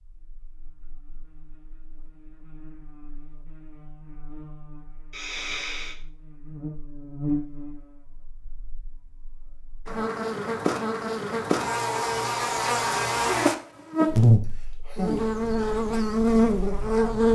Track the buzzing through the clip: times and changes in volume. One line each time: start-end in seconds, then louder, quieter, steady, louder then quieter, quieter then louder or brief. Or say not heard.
0.2-17.3 louder.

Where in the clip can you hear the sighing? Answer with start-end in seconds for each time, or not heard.
5.1-6.0, 14.6-15.2.